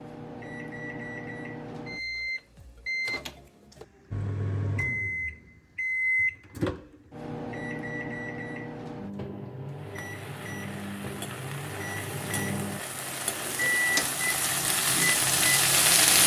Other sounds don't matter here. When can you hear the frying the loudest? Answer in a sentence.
The volume of the frying peaks at 16 seconds.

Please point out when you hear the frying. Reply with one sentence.
The frying can be heard from 9.7 to 16.2 s.